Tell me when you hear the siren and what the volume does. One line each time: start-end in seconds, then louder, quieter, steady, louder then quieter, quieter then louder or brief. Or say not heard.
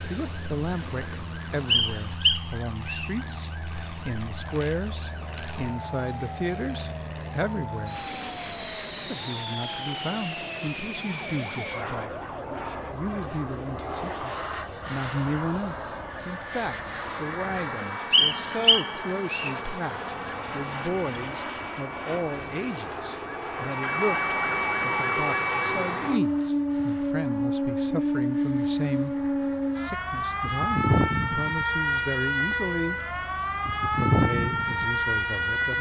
0.0-35.7 louder.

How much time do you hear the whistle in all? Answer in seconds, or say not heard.
3 s.